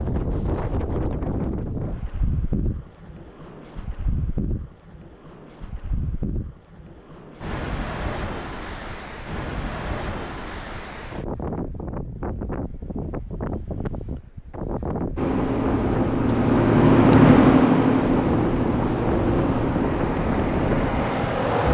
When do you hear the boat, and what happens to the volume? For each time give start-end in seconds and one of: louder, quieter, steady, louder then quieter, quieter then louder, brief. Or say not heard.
15.2-21.7 louder then quieter.